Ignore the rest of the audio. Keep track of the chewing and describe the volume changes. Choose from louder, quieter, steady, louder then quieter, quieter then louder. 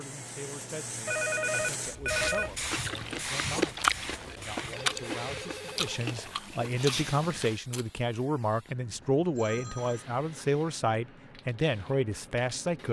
louder then quieter.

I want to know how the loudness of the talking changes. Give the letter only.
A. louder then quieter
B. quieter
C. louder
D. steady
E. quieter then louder
C.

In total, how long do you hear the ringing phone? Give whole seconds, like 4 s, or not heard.
4 s.